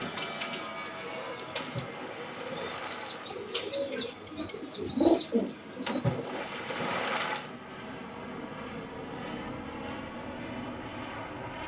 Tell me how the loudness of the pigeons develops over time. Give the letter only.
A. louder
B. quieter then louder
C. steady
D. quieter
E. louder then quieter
A.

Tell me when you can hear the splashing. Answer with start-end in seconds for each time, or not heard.
1.6-3.5, 5.8-7.5.